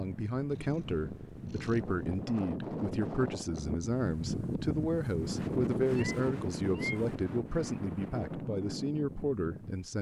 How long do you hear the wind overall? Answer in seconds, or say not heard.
10 s.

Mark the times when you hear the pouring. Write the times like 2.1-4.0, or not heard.
not heard.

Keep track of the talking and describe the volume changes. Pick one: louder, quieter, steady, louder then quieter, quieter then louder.
steady.